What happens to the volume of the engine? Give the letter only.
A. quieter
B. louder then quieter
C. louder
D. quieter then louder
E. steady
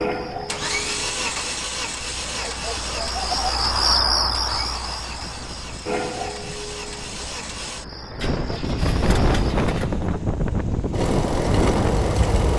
D.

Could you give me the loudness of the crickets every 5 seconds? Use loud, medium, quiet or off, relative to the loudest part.
loud, medium, off.